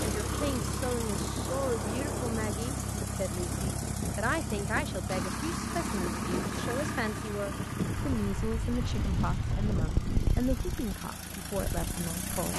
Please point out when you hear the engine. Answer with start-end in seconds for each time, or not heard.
0.0-12.5.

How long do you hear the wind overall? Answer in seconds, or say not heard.
12 s.